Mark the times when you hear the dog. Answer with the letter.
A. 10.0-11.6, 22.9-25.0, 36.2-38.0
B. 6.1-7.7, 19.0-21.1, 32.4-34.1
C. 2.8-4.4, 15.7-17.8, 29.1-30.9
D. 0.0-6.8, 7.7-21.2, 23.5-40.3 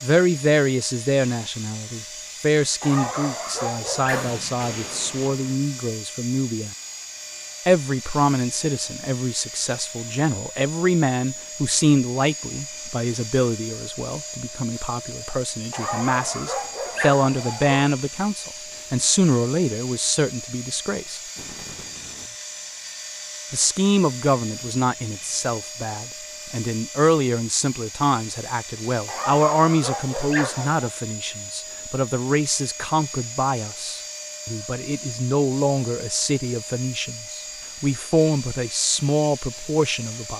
C.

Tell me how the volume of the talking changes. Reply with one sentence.
The volume of the talking stays about the same.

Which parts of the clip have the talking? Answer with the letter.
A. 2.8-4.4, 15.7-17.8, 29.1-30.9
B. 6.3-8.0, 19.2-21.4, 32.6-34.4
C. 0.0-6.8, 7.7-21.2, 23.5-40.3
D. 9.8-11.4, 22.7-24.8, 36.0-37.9
C.